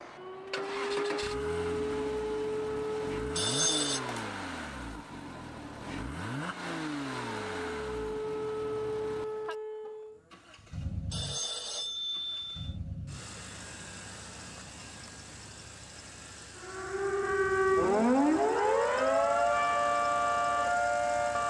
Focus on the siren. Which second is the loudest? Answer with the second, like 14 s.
18 s.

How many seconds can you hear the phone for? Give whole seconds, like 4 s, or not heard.
2 s.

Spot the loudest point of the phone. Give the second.
4 s.